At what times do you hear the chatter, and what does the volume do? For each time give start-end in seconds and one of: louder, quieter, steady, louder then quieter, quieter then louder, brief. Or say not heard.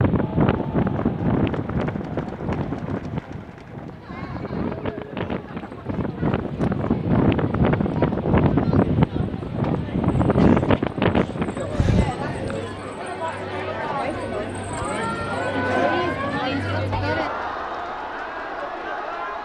0.1-19.3 louder.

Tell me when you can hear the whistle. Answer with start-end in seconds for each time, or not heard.
not heard.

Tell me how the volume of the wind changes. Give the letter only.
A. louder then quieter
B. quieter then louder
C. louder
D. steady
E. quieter
B.